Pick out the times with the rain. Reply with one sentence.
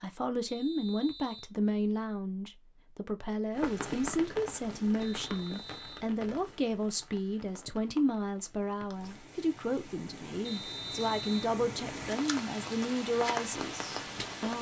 You can hear the rain from 3.5 to 14.5 s.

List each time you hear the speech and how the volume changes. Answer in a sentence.
You can hear the speech from 0.0 to 14.5 s, at a steady volume.